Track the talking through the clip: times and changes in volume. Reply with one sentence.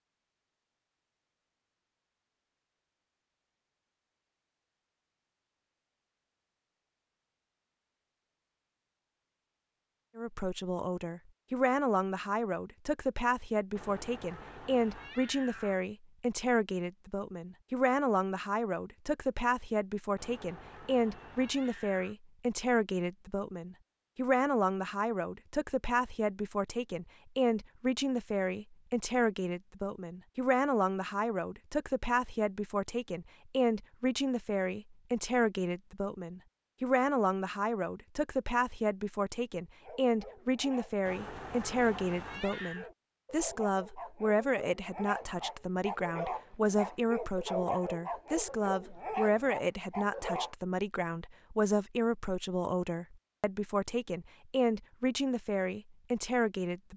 You can hear the talking from 10.2 to 56.9 s, at a steady volume.